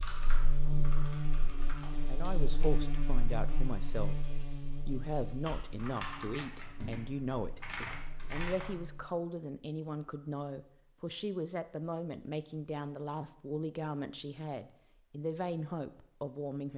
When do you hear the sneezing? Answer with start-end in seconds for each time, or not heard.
not heard.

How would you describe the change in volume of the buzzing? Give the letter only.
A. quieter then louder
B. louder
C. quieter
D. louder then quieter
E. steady
C.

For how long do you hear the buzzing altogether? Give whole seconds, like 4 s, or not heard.
9 s.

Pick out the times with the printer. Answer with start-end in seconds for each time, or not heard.
not heard.